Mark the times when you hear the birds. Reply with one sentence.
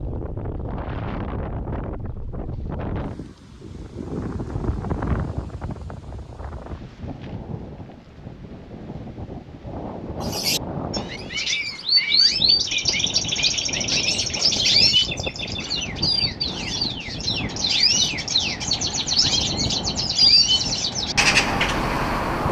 The birds can be heard from 10.2 to 22.4 s.